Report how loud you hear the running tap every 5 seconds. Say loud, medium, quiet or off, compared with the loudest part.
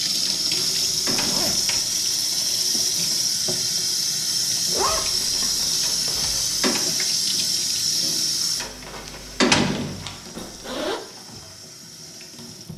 loud, loud, quiet.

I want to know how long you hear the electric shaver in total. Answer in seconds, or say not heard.
not heard.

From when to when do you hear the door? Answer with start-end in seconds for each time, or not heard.
0.2-1.6, 5.8-6.8, 8.6-10.2.